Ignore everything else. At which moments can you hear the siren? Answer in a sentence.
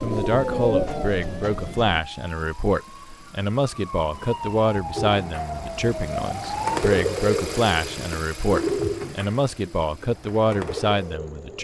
The siren can be heard from 0.0 to 6.8 s.